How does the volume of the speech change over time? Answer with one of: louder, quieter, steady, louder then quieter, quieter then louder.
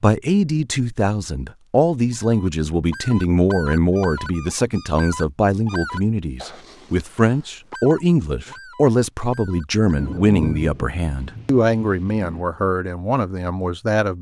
steady.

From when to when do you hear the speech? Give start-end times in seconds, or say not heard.
0.0-14.1.